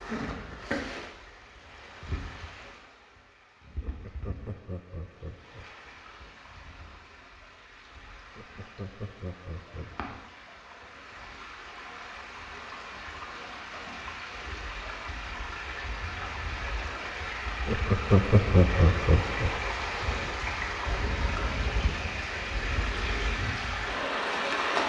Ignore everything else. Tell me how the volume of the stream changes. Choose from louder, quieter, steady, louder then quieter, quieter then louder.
quieter then louder.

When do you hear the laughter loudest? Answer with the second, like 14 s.
18 s.